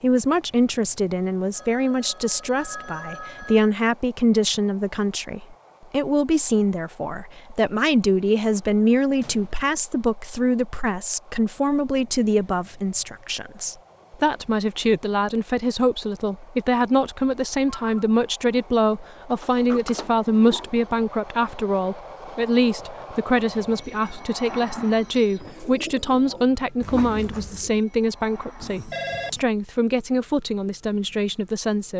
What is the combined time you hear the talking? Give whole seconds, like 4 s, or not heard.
32 s.